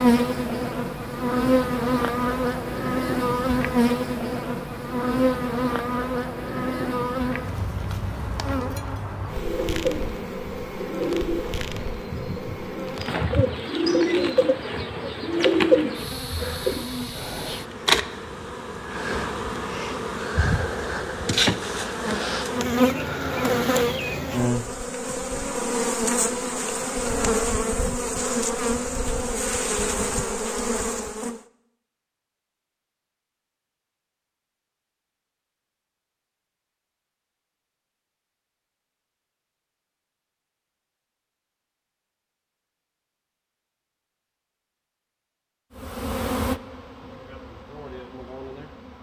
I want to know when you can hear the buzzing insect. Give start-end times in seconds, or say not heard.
0.0-31.4, 45.8-48.9.